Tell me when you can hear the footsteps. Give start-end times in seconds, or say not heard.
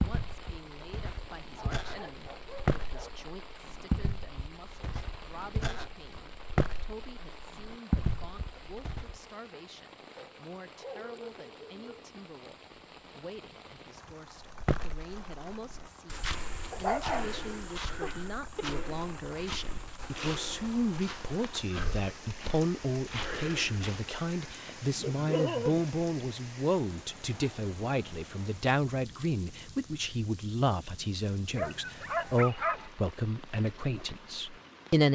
0.0-9.2, 14.5-24.1.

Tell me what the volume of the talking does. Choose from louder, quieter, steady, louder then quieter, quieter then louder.
louder.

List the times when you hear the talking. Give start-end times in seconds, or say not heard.
0.0-35.1.